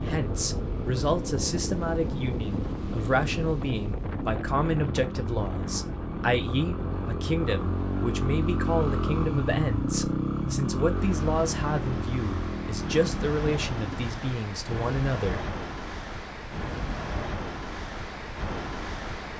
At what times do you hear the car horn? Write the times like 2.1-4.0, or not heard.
not heard.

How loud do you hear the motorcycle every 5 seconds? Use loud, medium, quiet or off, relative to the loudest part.
medium, loud, loud, off.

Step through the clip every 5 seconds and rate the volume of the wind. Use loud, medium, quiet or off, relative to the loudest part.
loud, medium, loud, loud.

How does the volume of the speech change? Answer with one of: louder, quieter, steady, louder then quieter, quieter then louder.
steady.